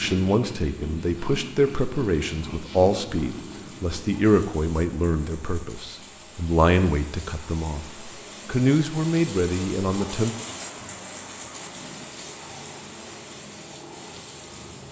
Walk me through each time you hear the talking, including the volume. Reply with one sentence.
You can hear the talking from 0.0 to 10.3 s, at a steady volume.